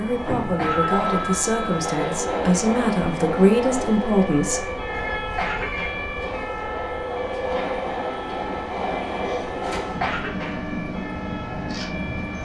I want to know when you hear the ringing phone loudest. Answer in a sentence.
The loudest moment of the ringing phone is at 1 second.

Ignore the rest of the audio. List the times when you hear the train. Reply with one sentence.
The train can be heard from 0.0 to 12.3 s.